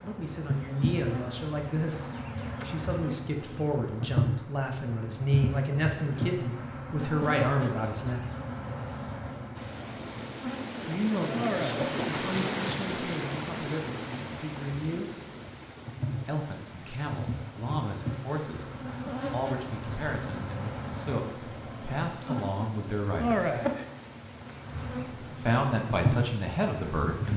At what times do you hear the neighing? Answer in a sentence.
The neighing can't be heard in this clip.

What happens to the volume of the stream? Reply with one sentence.
The loudness of the stream goes down.